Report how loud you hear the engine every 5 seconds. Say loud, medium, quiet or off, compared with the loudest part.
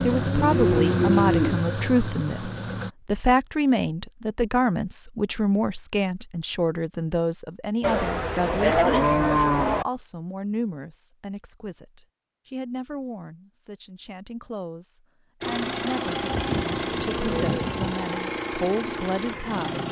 loud, off, off, loud.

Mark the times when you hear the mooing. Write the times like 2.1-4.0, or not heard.
0.2-1.6, 7.8-9.8, 16.1-18.1.